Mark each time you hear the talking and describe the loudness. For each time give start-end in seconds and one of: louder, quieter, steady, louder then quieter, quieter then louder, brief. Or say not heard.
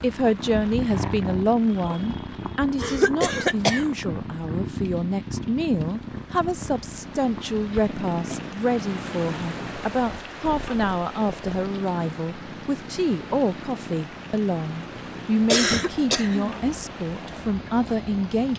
0.0-18.5 steady.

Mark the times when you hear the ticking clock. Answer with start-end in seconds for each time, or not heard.
not heard.